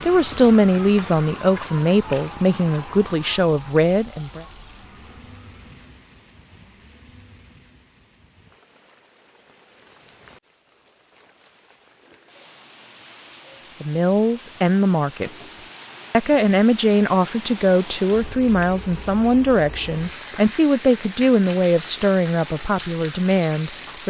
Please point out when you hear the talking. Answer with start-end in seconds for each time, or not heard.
0.0-4.5, 13.8-24.0.